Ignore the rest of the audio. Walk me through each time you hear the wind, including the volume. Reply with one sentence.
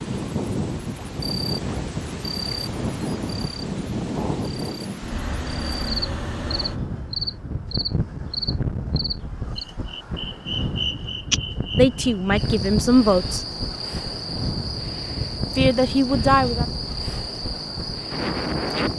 You can hear the wind from 0.0 to 18.9 s, at a steady volume.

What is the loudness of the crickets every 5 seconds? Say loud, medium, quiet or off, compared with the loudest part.
medium, loud, loud, loud.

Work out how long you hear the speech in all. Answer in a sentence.
You can hear the speech for 3 seconds altogether.